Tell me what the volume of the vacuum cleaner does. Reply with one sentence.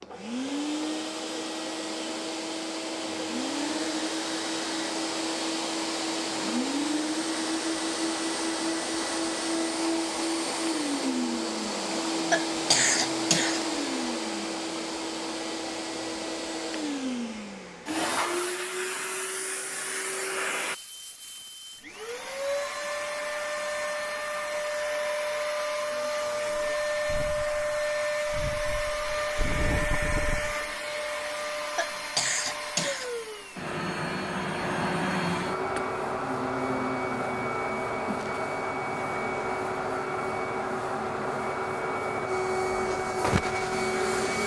The loudness of the vacuum cleaner stays about the same.